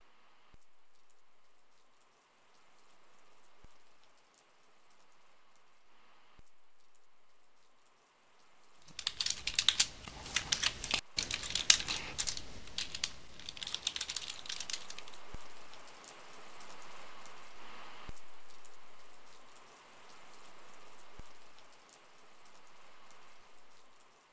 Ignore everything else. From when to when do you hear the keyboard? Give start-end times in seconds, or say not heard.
8.9-15.2.